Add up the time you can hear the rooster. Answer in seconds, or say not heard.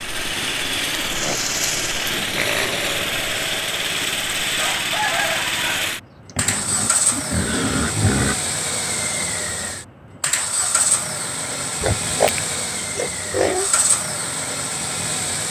2 s.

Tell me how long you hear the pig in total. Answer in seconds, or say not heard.
6 s.